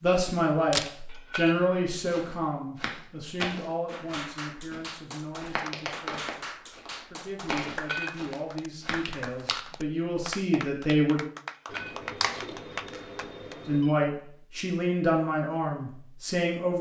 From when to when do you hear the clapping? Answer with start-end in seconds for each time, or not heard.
3.9-13.6.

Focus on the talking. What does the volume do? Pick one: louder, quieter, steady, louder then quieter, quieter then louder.
quieter then louder.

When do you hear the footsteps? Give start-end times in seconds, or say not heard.
2.0-9.1.